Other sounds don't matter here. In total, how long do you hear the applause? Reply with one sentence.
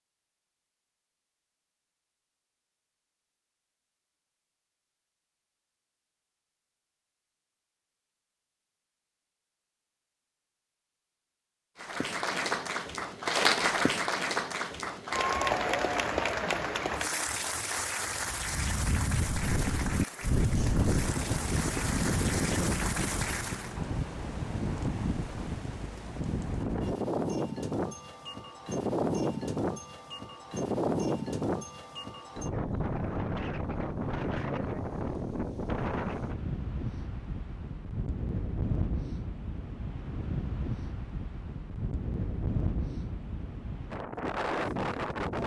The applause can be heard for 12 seconds in total.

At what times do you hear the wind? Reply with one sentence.
The wind can be heard from 18.1 to 45.4 s.